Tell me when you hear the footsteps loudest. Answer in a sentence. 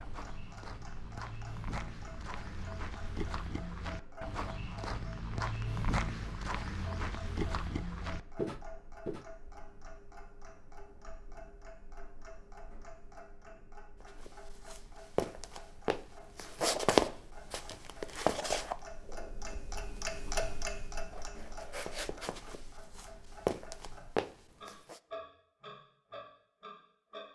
The volume of the footsteps peaks at 17 seconds.